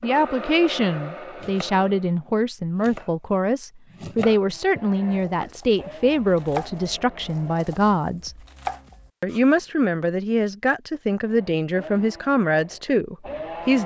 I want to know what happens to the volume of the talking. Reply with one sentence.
The volume of the talking stays about the same.